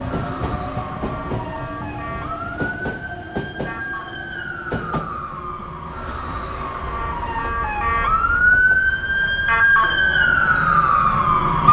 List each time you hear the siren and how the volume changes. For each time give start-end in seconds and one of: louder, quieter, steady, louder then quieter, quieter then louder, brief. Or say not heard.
0.0-11.6 louder.